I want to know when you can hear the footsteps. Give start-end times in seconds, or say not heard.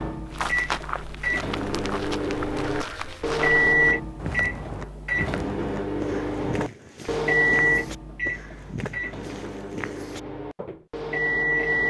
0.3-10.8.